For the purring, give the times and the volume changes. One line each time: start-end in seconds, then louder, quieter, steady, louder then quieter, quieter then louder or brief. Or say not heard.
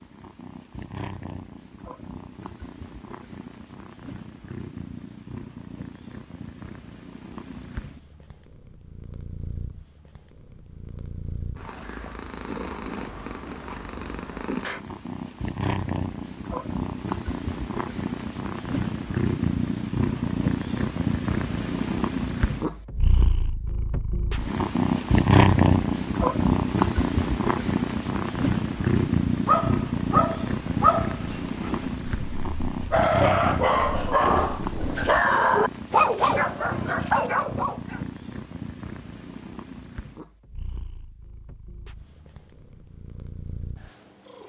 0.0-44.4 louder then quieter.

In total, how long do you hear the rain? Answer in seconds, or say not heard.
not heard.